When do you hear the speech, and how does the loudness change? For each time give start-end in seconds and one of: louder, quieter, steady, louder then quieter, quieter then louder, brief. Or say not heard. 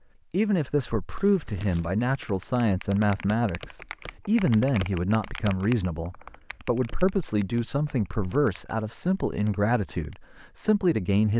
0.3-11.3 steady.